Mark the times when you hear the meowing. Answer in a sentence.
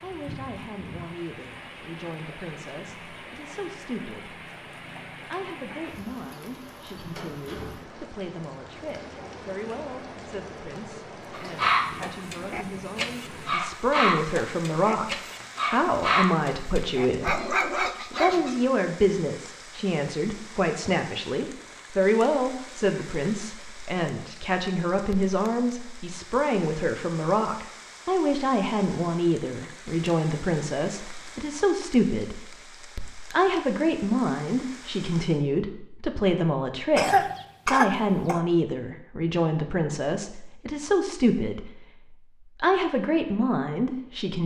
The meowing can't be heard in this clip.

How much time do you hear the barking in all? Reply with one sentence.
The barking can be heard for 7 seconds in total.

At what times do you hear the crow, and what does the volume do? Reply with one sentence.
You can't hear the crow here.